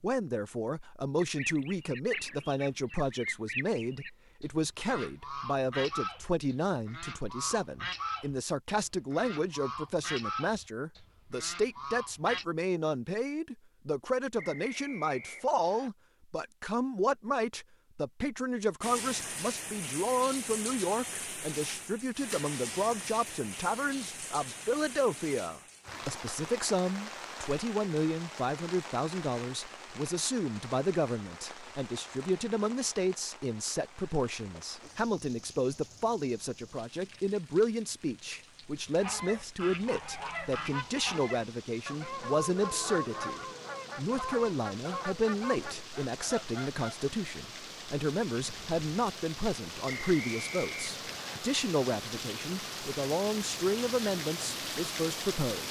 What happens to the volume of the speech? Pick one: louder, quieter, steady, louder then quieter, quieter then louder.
steady.